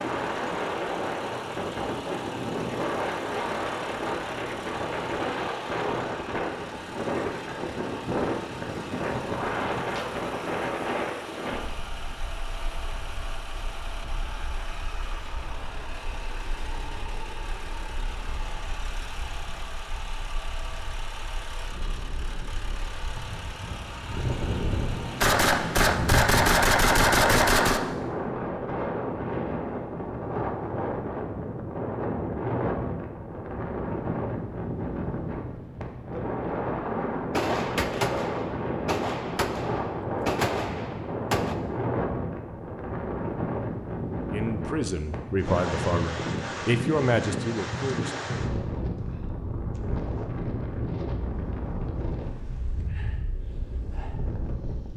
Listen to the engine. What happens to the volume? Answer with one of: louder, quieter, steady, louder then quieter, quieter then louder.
steady.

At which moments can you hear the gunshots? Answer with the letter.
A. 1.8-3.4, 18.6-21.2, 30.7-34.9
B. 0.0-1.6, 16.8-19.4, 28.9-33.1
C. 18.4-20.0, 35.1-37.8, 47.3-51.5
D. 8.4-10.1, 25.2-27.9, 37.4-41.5
D.